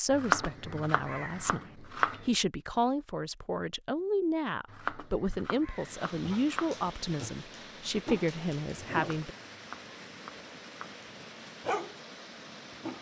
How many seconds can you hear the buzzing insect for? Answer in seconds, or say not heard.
not heard.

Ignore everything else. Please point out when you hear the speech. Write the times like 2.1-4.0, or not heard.
0.0-9.3.